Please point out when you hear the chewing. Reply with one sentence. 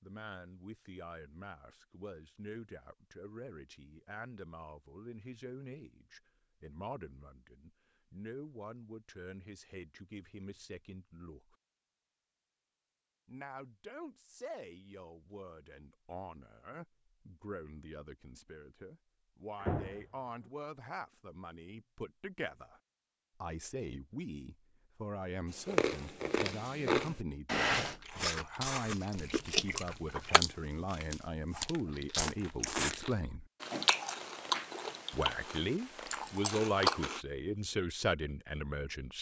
The chewing can be heard from 25.6 to 37.2 s.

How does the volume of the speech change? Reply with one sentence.
The loudness of the speech goes up.